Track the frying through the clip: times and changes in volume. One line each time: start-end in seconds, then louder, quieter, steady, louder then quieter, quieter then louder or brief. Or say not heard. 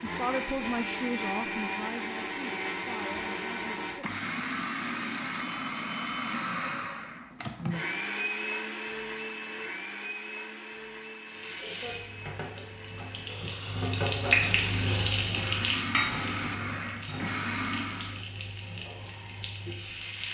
11.2-20.2 louder then quieter.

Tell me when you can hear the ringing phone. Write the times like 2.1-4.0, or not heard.
not heard.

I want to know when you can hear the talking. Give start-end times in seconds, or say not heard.
0.0-3.9.